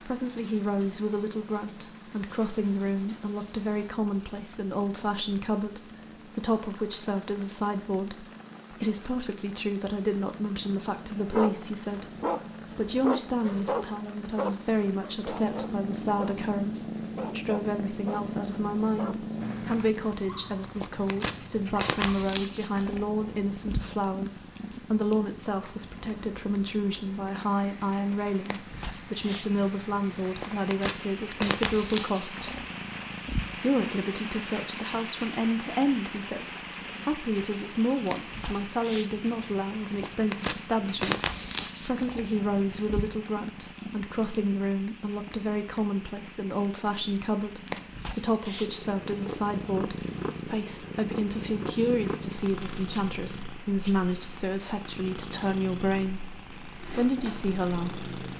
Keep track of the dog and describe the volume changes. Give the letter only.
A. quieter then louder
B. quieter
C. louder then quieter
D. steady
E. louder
B.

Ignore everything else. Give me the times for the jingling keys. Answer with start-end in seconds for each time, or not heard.
not heard.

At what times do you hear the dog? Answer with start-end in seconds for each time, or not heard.
11.2-16.5, 17.1-22.0.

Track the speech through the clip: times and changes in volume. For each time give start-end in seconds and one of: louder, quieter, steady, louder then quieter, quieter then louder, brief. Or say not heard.
0.1-32.5 steady
33.5-58.1 steady.